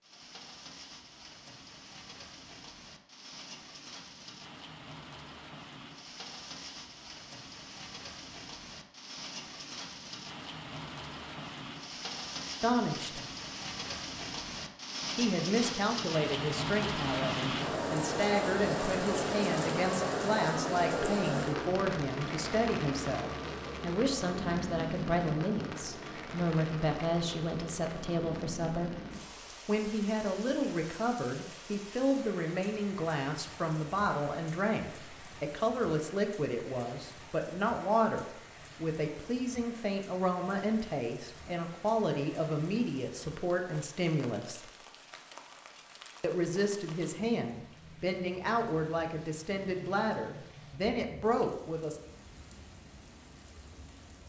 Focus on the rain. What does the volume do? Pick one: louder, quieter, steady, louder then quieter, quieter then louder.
louder then quieter.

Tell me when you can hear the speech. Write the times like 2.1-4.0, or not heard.
12.6-13.2, 15.2-28.9, 29.6-44.6, 46.2-52.0.